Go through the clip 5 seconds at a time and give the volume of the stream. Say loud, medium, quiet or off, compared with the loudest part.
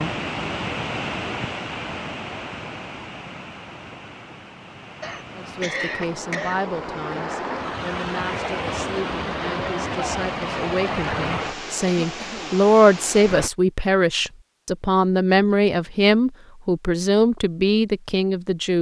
loud, loud, loud, off.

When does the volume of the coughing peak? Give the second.
6 s.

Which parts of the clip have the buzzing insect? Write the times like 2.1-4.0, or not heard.
not heard.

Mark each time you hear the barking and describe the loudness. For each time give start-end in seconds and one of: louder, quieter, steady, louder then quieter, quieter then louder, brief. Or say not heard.
not heard.